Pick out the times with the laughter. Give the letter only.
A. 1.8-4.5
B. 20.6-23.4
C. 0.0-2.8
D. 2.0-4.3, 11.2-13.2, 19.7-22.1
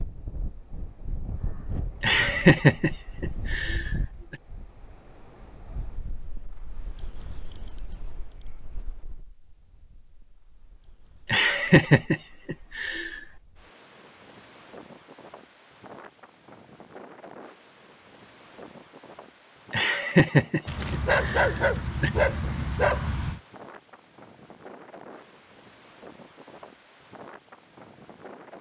D.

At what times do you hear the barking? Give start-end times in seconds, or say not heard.
20.6-23.4.